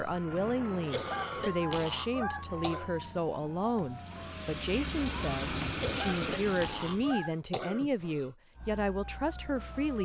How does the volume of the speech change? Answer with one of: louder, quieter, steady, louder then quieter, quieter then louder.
steady.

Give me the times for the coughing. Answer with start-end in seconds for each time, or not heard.
0.9-3.0, 5.8-8.3.